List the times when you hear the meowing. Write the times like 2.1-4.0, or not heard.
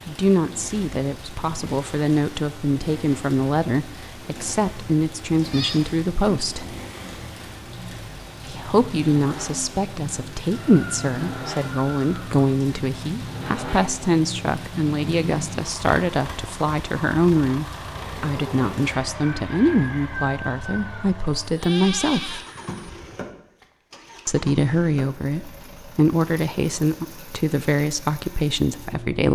not heard.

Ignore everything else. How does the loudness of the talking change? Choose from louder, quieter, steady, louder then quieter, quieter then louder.
steady.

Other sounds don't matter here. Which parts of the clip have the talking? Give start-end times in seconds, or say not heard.
0.1-6.7, 8.4-22.4, 24.2-29.3.